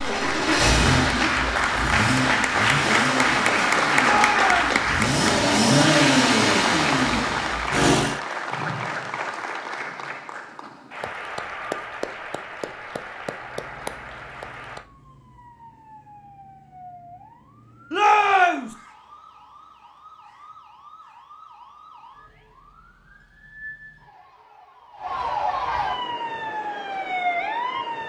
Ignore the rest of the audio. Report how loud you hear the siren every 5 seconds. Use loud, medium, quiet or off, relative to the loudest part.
off, off, quiet, quiet, quiet, loud.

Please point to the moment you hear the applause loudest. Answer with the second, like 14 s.
4 s.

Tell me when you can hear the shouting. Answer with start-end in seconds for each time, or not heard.
4.0-4.8, 17.9-18.8.